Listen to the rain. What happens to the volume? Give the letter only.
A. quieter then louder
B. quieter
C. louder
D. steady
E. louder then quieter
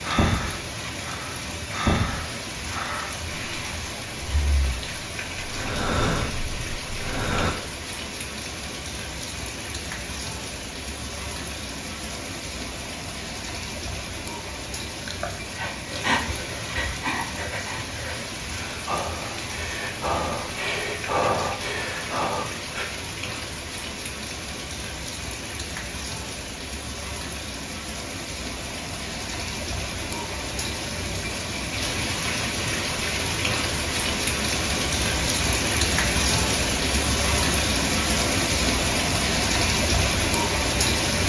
C.